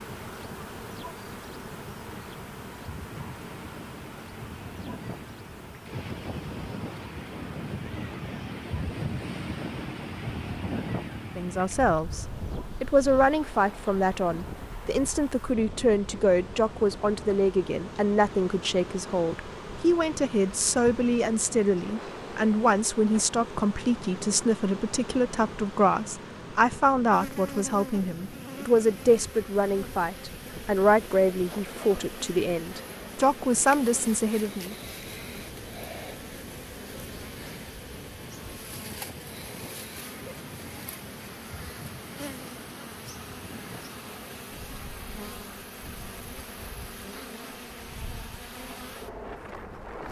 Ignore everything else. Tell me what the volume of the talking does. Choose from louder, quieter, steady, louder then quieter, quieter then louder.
steady.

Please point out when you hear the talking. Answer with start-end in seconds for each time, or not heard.
11.3-34.8.